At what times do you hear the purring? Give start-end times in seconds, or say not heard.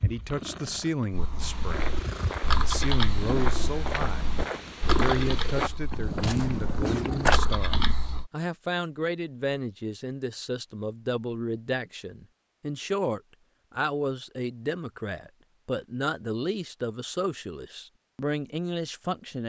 0.0-8.0.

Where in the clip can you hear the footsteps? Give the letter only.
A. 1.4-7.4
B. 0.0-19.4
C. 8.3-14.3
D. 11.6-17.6
A.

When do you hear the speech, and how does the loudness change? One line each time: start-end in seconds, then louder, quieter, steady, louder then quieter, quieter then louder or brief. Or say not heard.
0.0-19.4 steady.